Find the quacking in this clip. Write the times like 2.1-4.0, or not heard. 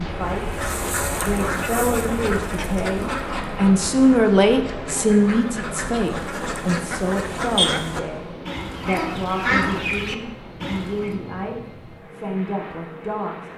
0.2-11.2.